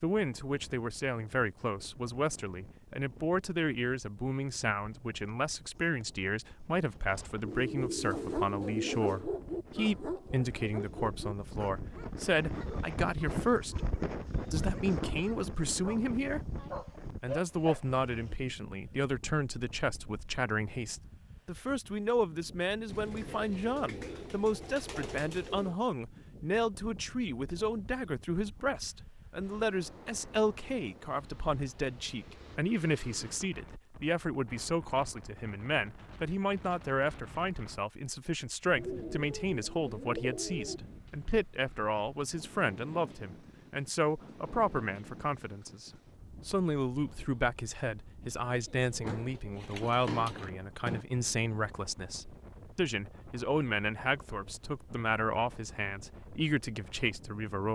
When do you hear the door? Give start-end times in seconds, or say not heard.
49.0-51.0.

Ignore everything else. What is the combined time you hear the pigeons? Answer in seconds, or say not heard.
9 s.